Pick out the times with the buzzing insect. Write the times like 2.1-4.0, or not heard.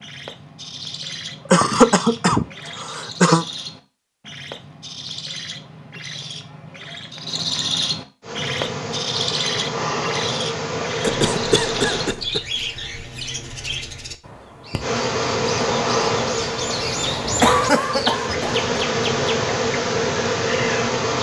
8.2-12.2, 14.8-21.1.